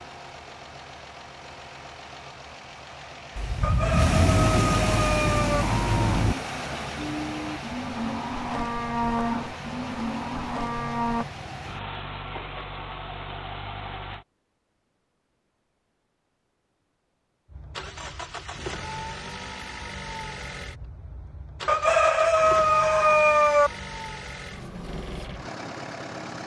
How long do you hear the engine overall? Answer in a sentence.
The engine can be heard for 23 seconds in total.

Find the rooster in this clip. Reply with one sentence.
The rooster can be heard from 3.6 to 5.7 s and from 21.6 to 23.7 s.